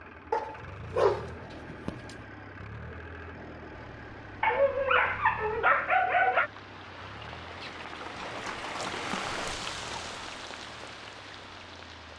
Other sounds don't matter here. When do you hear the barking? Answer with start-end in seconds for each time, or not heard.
0.3-2.1, 4.4-6.5, 8.2-10.2.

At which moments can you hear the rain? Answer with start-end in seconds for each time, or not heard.
3.7-12.1.